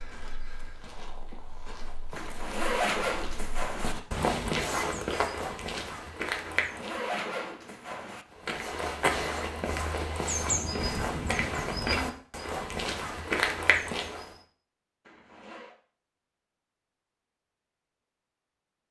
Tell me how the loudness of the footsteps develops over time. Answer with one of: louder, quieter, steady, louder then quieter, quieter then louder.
louder.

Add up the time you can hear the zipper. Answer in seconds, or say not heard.
4 s.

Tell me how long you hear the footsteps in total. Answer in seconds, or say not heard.
13 s.